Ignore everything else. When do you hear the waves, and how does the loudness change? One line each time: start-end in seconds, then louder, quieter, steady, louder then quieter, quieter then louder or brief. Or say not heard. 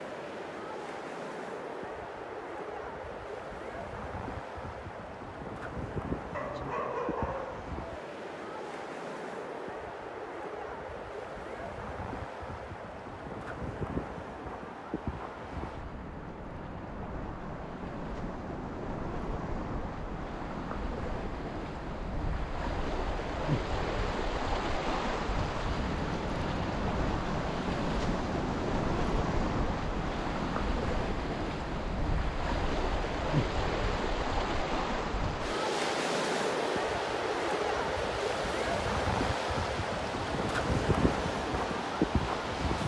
0.0-42.8 louder.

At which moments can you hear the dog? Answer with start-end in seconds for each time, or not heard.
6.3-8.0.